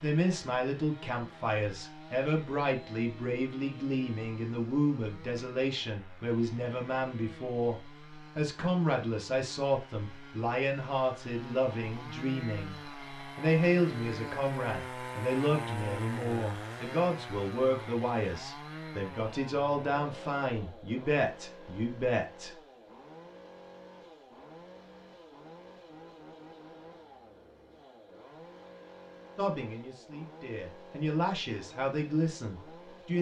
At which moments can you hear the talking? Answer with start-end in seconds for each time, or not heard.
0.0-22.6, 29.4-33.1.